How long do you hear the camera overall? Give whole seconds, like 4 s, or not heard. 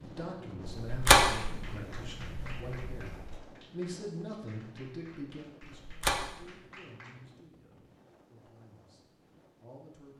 3 s.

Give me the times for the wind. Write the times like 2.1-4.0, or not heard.
0.0-10.1.